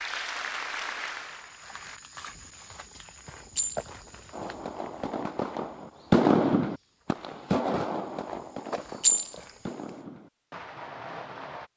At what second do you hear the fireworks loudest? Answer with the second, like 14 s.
6 s.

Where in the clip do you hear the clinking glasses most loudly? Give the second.
9 s.